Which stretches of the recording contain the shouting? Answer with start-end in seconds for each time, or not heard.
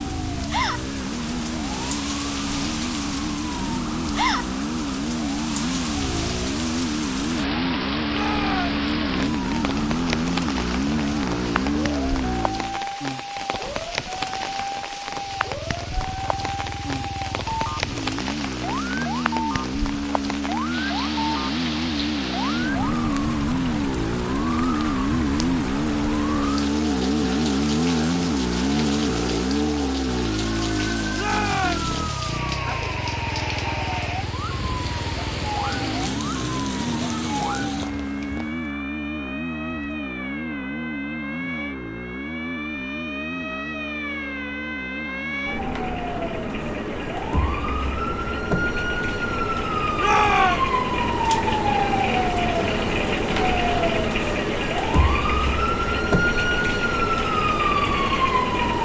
8.1-8.8, 31.1-31.9, 50.0-50.6.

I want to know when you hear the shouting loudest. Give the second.
50 s.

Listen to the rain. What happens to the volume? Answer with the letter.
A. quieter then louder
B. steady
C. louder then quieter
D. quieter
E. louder
B.